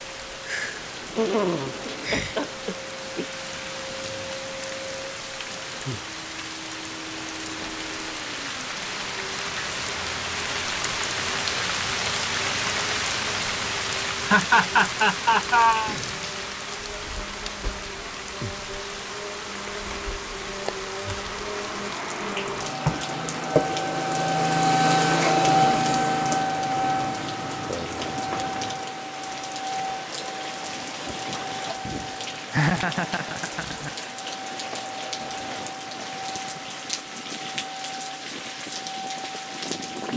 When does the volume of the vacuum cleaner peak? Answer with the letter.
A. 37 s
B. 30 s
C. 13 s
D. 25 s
D.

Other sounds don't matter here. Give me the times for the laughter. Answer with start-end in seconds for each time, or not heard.
1.1-3.4, 14.2-15.9, 32.5-33.9.